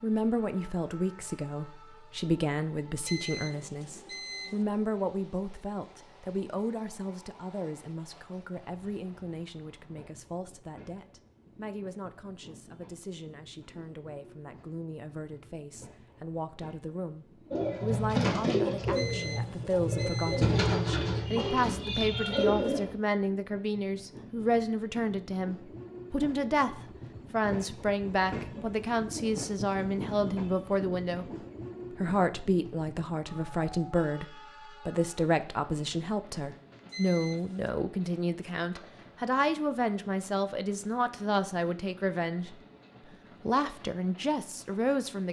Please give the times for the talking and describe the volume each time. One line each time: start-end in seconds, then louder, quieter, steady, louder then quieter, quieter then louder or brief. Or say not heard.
0.0-31.3 quieter then louder
31.9-42.5 steady
43.4-45.2 brief.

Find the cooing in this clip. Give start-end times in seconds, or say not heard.
17.5-22.9.